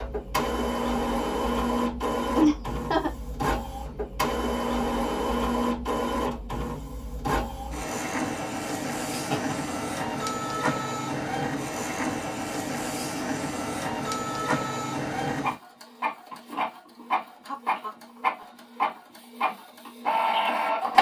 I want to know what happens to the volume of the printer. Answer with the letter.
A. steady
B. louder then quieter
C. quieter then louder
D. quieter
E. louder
A.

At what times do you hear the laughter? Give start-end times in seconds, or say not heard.
2.4-3.1, 9.1-9.8, 17.4-18.4.